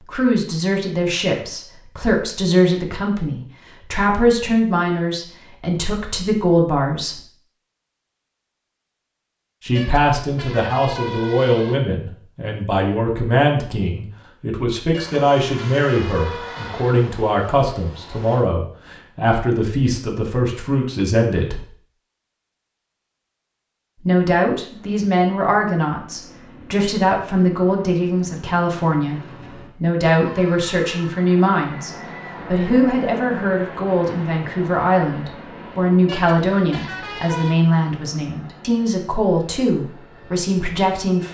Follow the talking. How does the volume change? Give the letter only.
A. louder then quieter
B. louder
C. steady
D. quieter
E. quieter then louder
C.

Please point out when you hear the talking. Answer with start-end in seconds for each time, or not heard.
0.0-7.2, 9.6-21.6, 24.0-41.2.